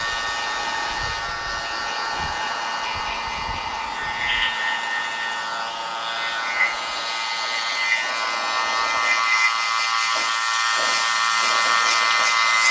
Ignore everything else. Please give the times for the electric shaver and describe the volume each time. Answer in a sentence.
The electric shaver can be heard from 0.0 to 12.6 s, getting louder.